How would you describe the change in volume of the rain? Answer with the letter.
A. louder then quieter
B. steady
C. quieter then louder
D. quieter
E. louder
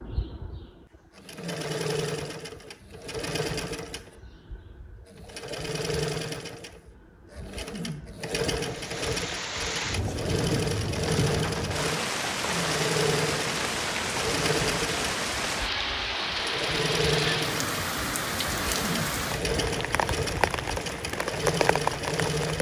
B.